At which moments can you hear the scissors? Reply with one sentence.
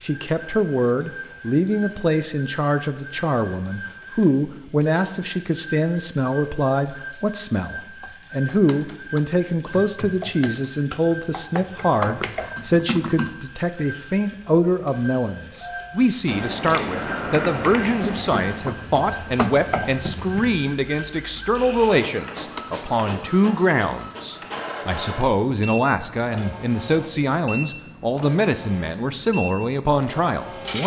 The scissors can be heard from 16.2 to 18.6 s.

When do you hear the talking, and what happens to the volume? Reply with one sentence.
You can hear the talking from 0.0 to 30.8 s, at a steady volume.